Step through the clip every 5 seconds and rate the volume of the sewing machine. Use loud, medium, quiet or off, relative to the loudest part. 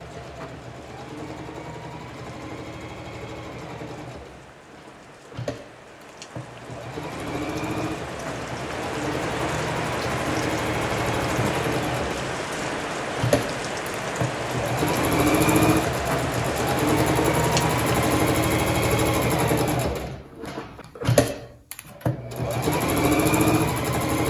quiet, medium, medium, loud, loud.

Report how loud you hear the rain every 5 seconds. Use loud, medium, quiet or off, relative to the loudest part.
quiet, medium, loud, loud, off.